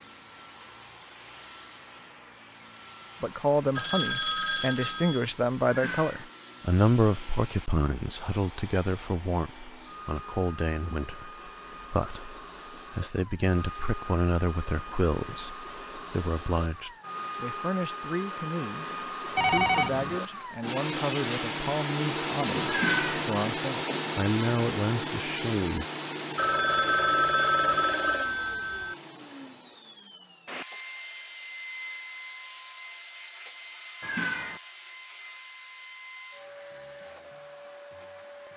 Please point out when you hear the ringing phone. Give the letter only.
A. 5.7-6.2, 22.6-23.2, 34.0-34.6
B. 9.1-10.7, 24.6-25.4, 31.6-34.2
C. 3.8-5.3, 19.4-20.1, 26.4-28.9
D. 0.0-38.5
C.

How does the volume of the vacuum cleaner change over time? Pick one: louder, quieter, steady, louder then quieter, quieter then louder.
louder then quieter.